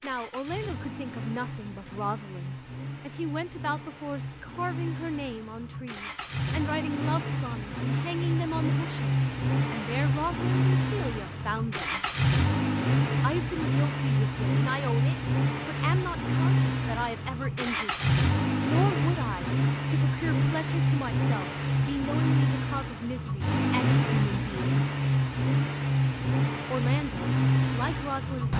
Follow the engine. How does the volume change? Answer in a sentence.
The volume of the engine goes up.